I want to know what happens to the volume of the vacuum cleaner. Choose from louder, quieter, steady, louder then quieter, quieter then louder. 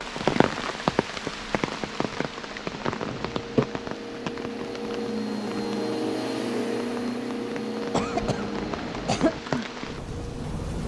louder then quieter.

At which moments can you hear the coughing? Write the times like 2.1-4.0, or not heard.
3.1-3.7, 7.9-9.4.